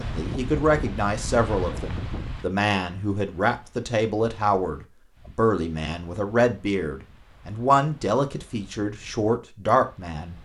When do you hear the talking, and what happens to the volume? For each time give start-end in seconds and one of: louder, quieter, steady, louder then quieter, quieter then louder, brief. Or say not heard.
0.0-10.3 steady.